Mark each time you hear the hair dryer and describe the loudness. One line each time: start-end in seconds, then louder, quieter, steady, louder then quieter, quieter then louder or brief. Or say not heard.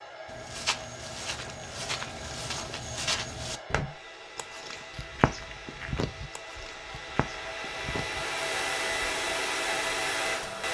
0.0-10.6 louder.